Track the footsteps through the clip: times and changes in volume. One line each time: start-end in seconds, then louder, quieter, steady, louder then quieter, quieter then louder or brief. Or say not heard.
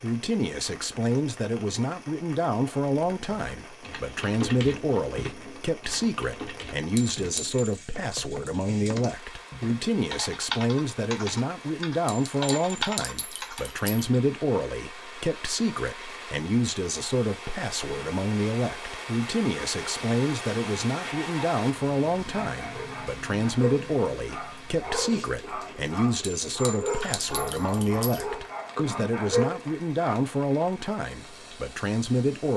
not heard.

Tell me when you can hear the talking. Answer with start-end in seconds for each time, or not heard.
0.0-32.5.